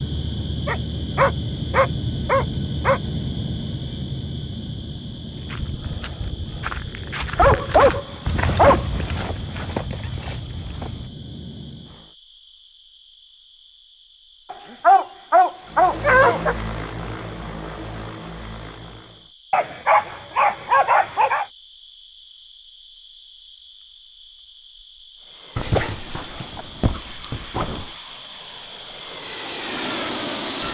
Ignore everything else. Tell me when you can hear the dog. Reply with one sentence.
The dog can be heard from 0.7 to 3.0 s, from 7.3 to 9.2 s, from 14.5 to 16.6 s, from 19.5 to 21.4 s and from 25.6 to 27.9 s.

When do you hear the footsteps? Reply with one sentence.
You can hear the footsteps from 5.3 to 11.1 s.